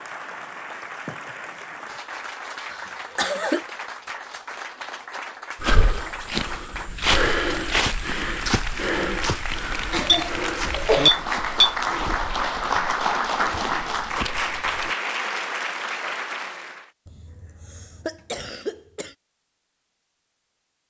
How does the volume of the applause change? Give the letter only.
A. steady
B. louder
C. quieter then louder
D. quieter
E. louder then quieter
B.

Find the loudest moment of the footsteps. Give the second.
7 s.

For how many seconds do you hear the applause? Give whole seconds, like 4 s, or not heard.
17 s.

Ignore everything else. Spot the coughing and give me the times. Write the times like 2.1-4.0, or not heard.
2.7-3.7, 9.9-11.1, 17.1-19.1.